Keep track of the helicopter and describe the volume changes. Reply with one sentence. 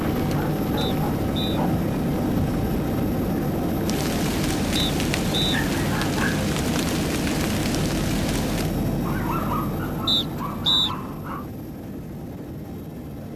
The volume of the helicopter goes down.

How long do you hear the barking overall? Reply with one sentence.
The barking can be heard for 5 seconds in total.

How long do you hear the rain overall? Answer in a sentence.
The rain can be heard for 9 seconds in total.